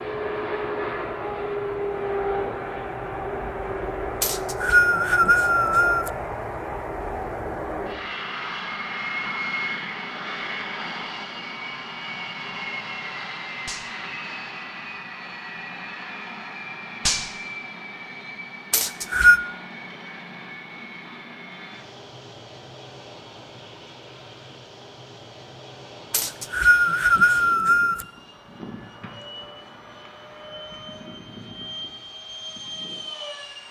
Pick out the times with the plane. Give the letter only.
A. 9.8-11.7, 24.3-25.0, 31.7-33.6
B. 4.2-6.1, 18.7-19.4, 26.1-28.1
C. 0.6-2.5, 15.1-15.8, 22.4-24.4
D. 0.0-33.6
D.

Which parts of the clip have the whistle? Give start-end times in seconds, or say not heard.
4.2-6.1, 18.7-19.4, 26.1-28.1.